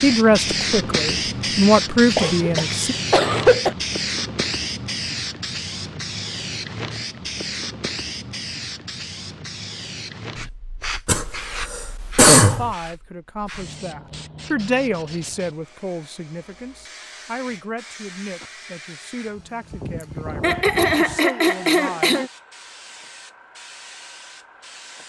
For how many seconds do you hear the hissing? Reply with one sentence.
The hissing can be heard for 25 seconds in total.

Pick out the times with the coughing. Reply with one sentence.
You can hear the coughing from 2.1 to 3.8 s, from 11.1 to 12.7 s and from 20.4 to 22.2 s.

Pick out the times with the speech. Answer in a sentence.
The speech can be heard from 0.0 to 3.0 s and from 12.4 to 22.2 s.